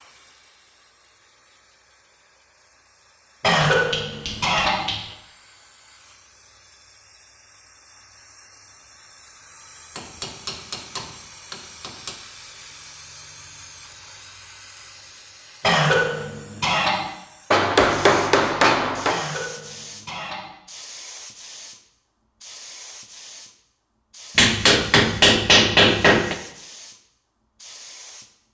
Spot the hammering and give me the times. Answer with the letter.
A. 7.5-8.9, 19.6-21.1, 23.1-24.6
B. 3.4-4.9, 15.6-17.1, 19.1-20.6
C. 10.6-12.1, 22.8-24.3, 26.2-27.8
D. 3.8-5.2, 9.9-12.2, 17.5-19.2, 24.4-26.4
D.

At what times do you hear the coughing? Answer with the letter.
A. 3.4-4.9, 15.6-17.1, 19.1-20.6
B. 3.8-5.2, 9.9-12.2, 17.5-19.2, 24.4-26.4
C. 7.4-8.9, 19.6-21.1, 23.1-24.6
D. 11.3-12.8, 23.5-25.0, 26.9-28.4
A.